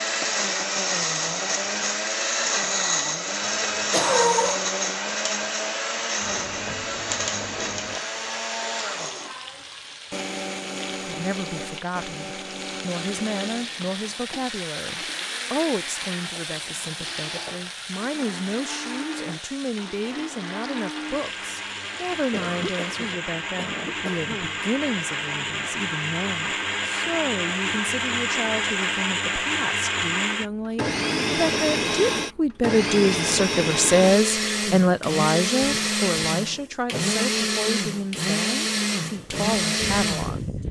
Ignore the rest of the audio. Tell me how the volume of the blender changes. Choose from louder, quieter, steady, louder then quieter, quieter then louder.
quieter then louder.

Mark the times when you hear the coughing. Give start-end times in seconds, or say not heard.
3.4-4.6, 22.3-24.6.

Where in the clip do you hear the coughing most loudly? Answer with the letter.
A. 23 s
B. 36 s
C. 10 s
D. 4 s
D.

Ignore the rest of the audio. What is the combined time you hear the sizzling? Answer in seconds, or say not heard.
17 s.